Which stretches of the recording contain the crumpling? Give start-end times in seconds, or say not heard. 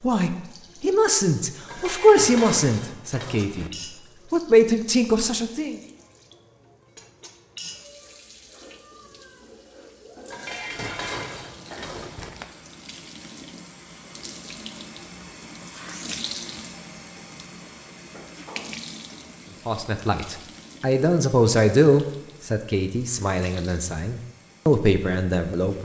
11.7-12.6.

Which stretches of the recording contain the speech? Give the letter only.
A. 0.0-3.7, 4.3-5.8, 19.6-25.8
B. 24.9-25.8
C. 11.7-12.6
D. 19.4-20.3
A.